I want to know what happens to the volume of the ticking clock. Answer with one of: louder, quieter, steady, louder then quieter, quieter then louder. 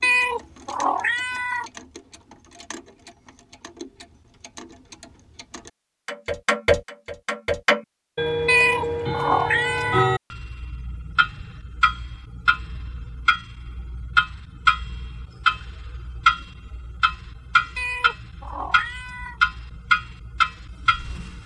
louder.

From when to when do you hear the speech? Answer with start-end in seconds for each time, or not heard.
not heard.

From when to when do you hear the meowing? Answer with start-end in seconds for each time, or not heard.
0.0-1.7, 8.4-10.2, 17.8-19.4.